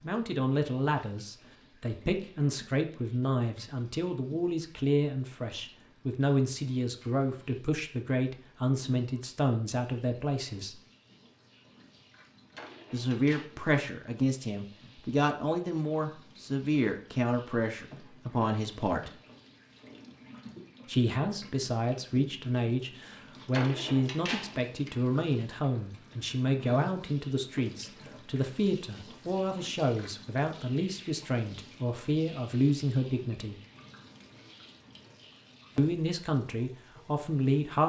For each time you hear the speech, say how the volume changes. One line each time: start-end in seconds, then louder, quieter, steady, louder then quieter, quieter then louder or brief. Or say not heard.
0.0-10.8 steady
12.9-19.1 steady
20.9-33.5 steady
35.8-37.8 brief.